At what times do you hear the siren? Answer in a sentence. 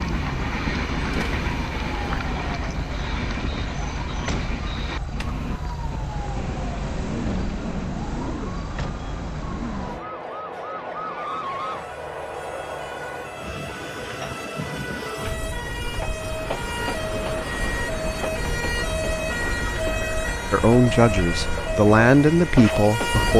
The siren can be heard from 0.0 to 23.3 s.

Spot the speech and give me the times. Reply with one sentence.
The speech can be heard from 20.5 to 23.3 s.